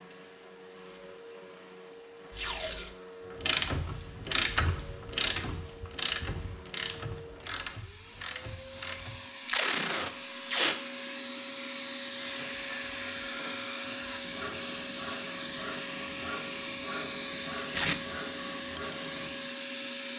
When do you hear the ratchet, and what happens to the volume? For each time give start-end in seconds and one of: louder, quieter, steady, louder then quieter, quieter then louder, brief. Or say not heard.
3.4-9.2 quieter.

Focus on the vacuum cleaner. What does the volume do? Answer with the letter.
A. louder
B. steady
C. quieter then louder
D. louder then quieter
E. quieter
A.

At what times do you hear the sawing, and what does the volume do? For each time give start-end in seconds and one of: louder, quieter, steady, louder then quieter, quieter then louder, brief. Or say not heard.
12.2-19.5 steady.